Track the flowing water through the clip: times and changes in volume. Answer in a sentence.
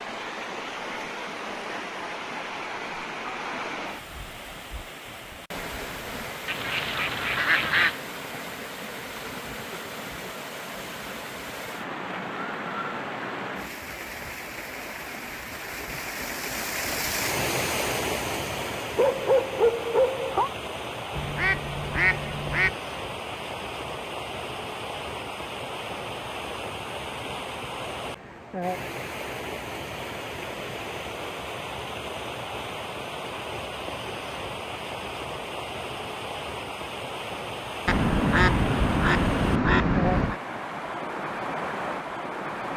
The flowing water can be heard from 0.0 to 42.7 s, at a steady volume.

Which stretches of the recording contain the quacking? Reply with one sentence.
You can hear the quacking from 6.5 to 8.0 s, from 21.1 to 22.8 s and from 37.9 to 40.4 s.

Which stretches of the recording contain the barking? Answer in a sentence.
The barking can be heard from 18.9 to 20.5 s.